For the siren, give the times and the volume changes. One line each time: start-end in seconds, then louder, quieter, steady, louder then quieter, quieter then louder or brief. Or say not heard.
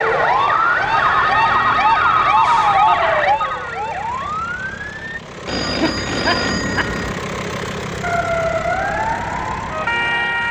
0.0-5.2 quieter
8.0-10.4 brief.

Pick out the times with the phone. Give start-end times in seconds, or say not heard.
0.9-3.6, 5.5-7.2.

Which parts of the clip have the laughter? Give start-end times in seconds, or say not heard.
2.9-3.5, 5.8-7.0.